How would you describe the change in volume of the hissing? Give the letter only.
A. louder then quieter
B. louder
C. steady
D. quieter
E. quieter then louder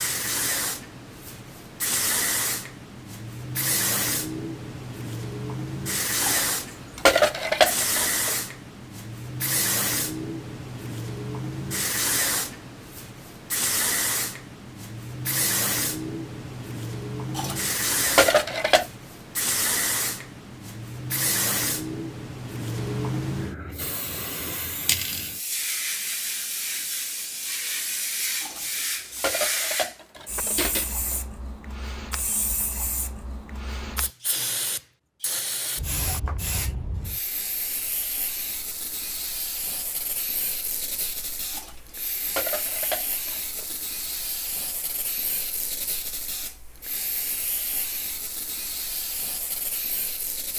D.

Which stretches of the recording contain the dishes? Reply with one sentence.
You can hear the dishes from 6.2 to 8.3 s, from 17.4 to 18.9 s, from 28.4 to 31.2 s and from 41.5 to 43.8 s.